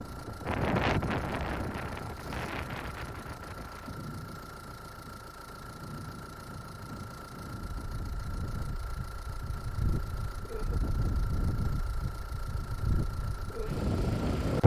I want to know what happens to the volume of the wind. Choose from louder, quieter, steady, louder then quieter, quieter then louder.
quieter then louder.